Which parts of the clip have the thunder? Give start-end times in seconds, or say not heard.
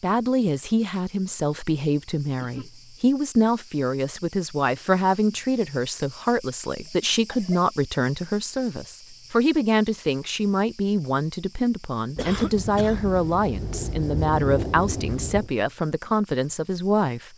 12.2-15.5.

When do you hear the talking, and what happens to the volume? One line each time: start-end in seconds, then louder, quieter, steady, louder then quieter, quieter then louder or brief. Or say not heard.
0.0-17.3 steady.